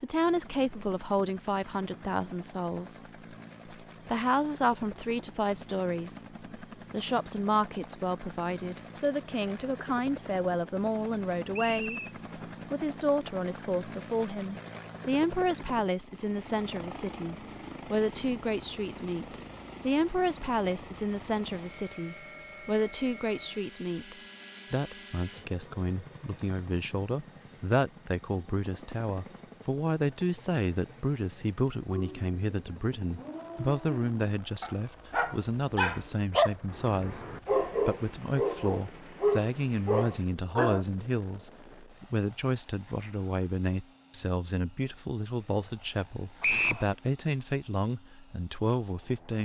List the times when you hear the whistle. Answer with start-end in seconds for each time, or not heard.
11.5-12.1, 46.4-46.9.